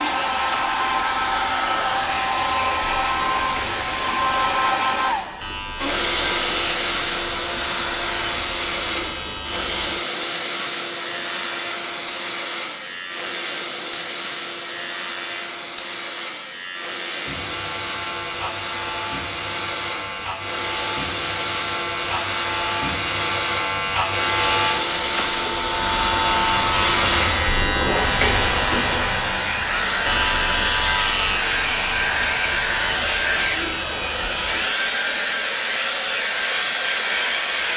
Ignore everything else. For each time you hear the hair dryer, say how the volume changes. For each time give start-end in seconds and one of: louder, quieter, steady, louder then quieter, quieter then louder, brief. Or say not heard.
0.0-37.7 quieter then louder.